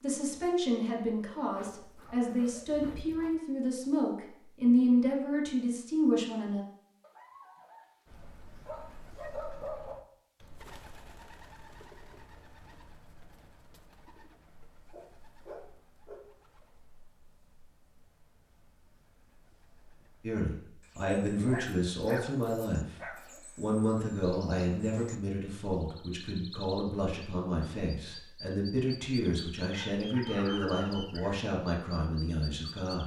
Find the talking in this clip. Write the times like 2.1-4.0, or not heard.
0.0-6.7, 20.2-33.0.